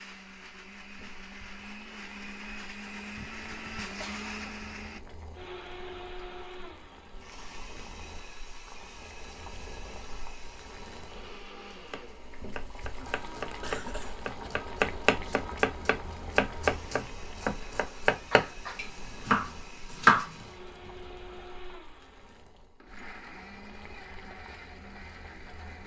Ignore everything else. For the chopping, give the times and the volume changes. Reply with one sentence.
The chopping can be heard from 11.9 to 20.4 s, getting louder.